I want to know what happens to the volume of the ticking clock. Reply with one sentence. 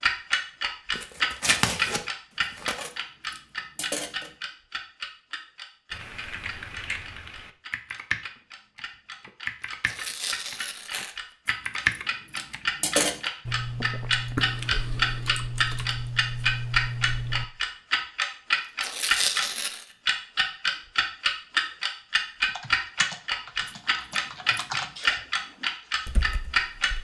The loudness of the ticking clock goes down, then up.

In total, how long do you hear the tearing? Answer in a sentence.
You can hear the tearing for 4 seconds altogether.